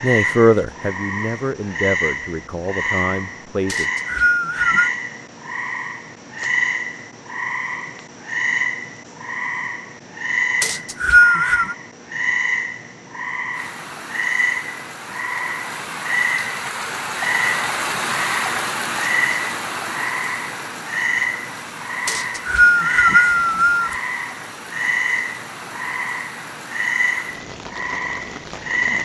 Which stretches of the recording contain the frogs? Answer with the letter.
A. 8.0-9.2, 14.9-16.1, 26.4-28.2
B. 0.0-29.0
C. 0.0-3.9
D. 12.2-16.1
B.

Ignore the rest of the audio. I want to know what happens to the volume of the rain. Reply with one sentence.
The loudness of the rain goes up, then down.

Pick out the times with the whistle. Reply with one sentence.
The whistle can be heard from 3.6 to 4.9 s, from 10.6 to 11.8 s and from 22.1 to 23.9 s.